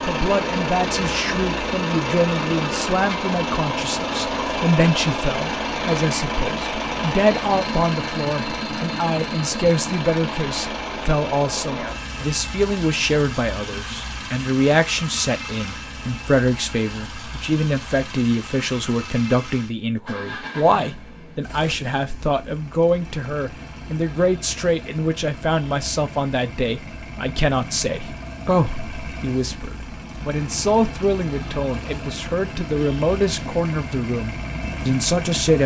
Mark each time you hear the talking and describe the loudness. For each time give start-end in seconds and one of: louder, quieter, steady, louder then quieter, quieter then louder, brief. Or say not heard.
0.0-35.6 steady.